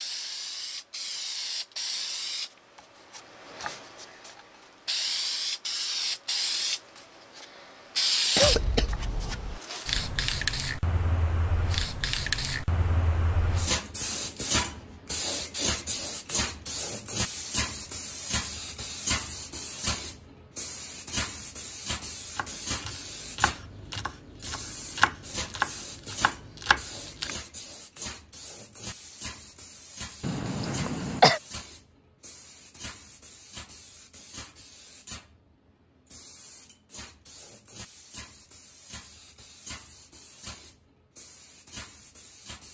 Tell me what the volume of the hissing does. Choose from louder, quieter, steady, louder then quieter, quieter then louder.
quieter.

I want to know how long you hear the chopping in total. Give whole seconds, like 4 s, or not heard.
5 s.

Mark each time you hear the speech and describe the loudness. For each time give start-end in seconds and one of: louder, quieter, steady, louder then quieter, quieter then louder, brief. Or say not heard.
not heard.